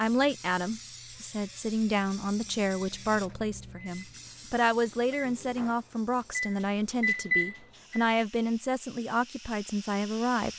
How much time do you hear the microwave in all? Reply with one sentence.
You can hear the microwave for 6 seconds altogether.